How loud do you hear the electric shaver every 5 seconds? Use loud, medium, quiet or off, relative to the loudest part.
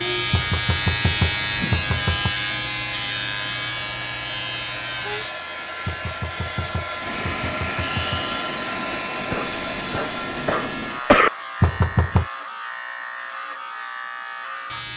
loud, medium, medium.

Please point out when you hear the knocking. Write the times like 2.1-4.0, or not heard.
0.3-2.3, 5.8-8.2, 11.6-12.2.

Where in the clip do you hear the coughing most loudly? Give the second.
11 s.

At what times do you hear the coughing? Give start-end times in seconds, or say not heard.
9.3-11.3.